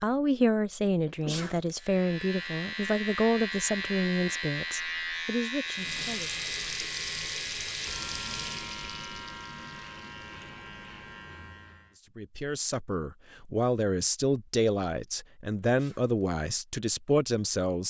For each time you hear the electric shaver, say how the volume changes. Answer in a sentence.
The electric shaver can be heard from 1.8 to 11.9 s, getting quieter.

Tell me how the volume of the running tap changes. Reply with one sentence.
The loudness of the running tap goes down.